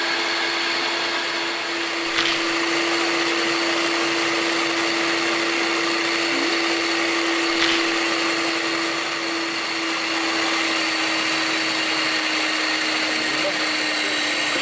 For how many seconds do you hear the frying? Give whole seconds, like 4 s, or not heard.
not heard.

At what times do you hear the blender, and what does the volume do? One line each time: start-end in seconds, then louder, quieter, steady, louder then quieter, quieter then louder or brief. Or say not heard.
0.0-14.5 steady.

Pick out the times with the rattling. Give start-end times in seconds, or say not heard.
2.0-2.5, 7.5-8.0.